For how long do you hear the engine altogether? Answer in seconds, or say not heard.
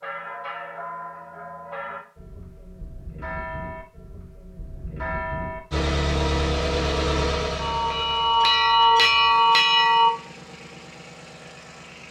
6 s.